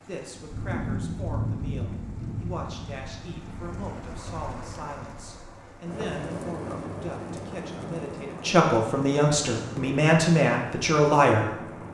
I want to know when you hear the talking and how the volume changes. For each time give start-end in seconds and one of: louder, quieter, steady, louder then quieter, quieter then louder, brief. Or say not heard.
0.1-11.5 louder.